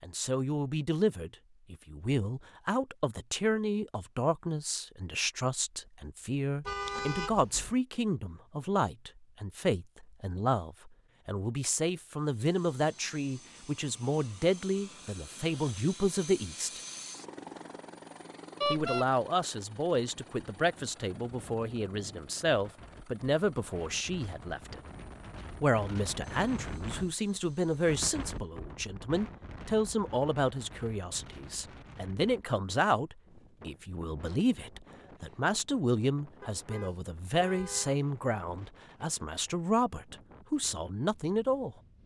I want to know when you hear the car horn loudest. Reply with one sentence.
The loudest moment of the car horn is at 19 seconds.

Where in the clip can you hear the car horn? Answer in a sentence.
You can hear the car horn from 6.7 to 7.8 s, from 18.6 to 19.1 s and from 36.4 to 38.0 s.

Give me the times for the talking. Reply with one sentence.
You can hear the talking from 0.0 to 16.8 s, from 18.7 to 24.8 s and from 25.6 to 41.8 s.